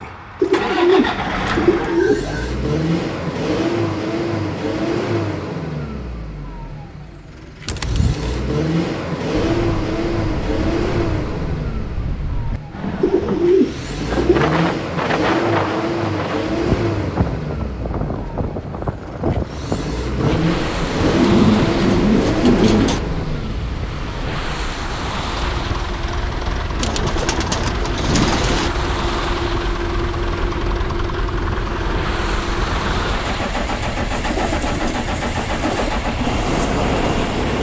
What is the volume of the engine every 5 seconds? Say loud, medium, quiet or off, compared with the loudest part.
loud, loud, loud, loud, loud, medium, loud, loud.